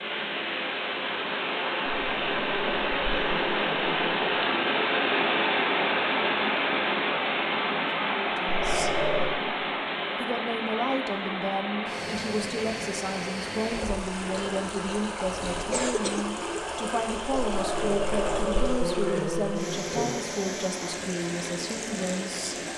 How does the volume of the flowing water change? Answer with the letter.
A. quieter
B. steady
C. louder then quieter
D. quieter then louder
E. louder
A.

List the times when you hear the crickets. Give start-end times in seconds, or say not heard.
not heard.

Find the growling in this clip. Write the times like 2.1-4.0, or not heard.
2.0-4.2, 8.4-9.3, 17.4-20.1.